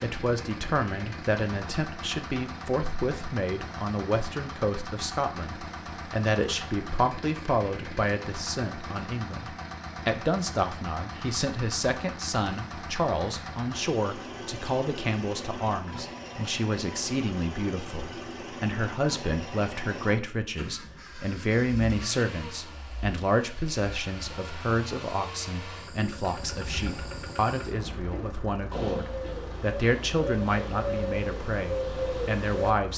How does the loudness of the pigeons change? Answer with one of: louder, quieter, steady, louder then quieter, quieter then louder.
louder.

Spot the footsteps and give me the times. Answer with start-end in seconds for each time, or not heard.
not heard.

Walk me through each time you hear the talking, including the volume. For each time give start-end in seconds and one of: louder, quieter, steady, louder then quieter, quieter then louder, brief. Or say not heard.
0.0-32.9 steady.